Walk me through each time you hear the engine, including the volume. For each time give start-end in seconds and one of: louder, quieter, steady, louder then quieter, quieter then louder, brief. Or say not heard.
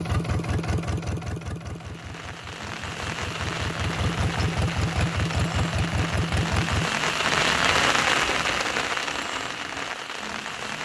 0.0-6.9 quieter then louder.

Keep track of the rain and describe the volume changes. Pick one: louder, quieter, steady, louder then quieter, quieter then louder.
louder then quieter.